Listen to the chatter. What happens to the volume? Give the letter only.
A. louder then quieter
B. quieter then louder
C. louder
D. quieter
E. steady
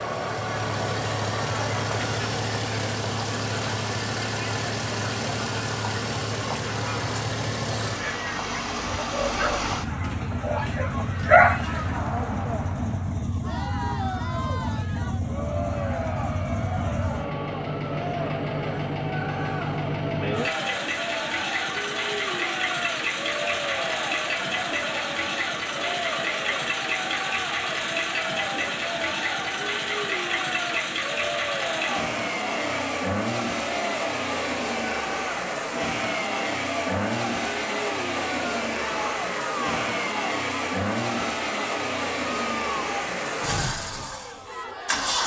E.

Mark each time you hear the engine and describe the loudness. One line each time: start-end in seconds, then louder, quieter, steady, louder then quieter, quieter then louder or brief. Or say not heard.
0.0-45.2 steady.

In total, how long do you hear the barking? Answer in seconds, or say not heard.
2 s.